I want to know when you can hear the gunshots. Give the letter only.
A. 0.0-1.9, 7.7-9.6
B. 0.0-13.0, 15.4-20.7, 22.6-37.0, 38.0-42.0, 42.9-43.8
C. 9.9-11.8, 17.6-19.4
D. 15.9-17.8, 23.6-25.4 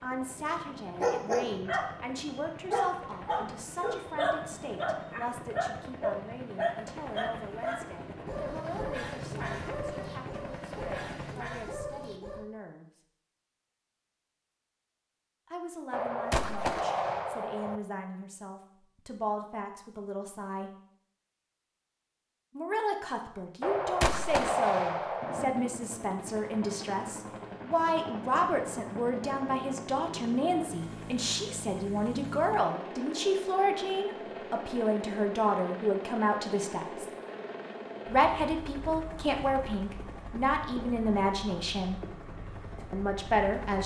D.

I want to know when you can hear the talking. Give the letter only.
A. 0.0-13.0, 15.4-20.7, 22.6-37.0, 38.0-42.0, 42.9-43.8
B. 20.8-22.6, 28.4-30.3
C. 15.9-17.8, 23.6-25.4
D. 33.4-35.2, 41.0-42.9
A.